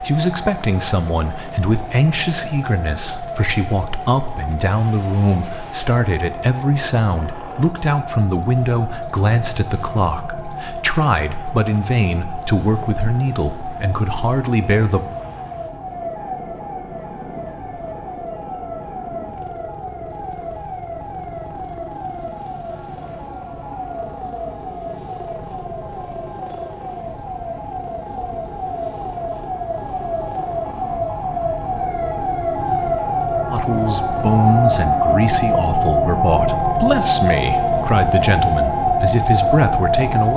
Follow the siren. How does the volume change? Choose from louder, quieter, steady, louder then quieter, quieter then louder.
louder.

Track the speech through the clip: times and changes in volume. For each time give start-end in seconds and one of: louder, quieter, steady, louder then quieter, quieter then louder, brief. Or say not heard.
0.0-15.1 steady
33.5-40.3 steady.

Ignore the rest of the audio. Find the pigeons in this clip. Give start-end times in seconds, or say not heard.
not heard.